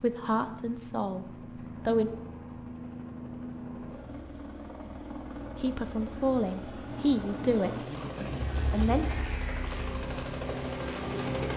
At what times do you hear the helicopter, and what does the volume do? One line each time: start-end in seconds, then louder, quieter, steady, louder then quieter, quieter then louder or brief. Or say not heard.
0.0-11.5 louder.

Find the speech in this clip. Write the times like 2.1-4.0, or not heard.
0.0-2.1, 5.5-9.2.